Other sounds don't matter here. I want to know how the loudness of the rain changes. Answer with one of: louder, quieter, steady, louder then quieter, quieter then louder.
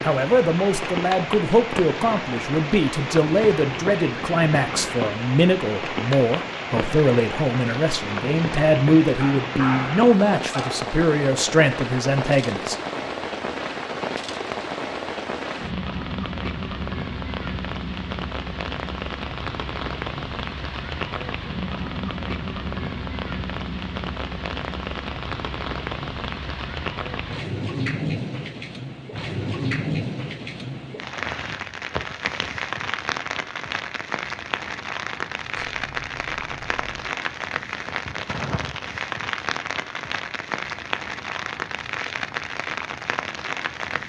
steady.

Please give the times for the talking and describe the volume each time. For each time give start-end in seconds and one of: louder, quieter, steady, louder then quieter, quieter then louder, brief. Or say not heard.
0.0-12.8 steady.